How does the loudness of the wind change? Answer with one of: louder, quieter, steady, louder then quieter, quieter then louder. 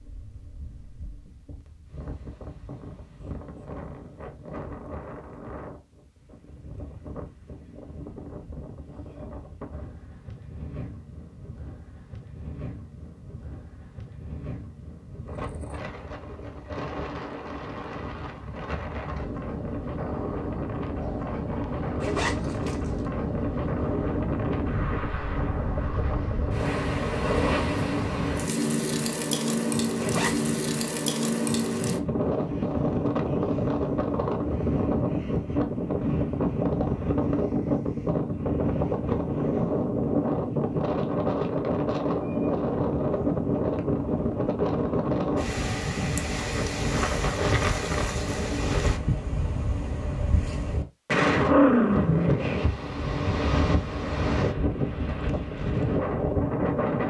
louder.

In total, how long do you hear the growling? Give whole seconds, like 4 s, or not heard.
4 s.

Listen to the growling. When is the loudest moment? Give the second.
52 s.